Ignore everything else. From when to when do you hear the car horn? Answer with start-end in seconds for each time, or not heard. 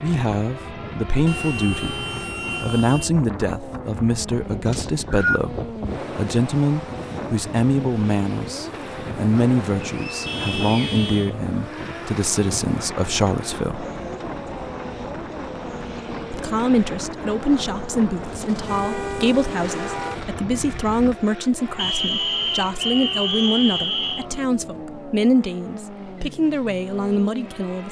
1.2-3.1, 10.2-11.3, 18.6-20.1.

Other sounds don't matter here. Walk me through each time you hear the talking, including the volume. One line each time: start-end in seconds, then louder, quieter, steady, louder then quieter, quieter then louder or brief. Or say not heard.
0.0-13.8 steady
16.3-27.8 steady.